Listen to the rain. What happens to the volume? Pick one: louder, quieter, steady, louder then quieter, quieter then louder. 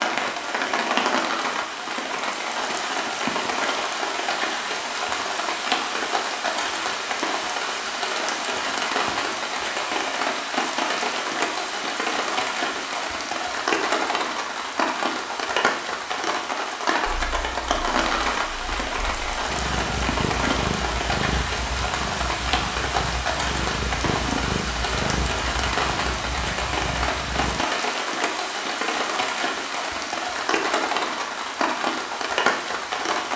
steady.